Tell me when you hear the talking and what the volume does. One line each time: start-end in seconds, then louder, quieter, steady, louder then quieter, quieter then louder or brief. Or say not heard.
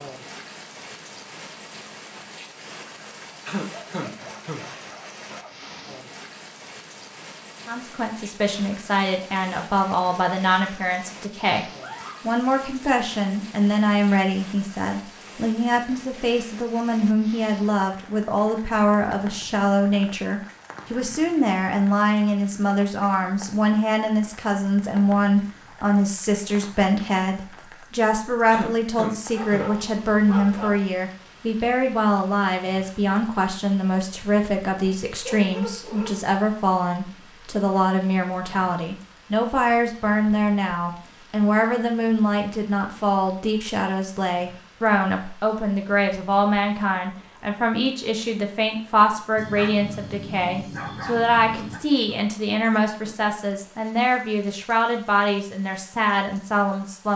7.7-57.1 steady.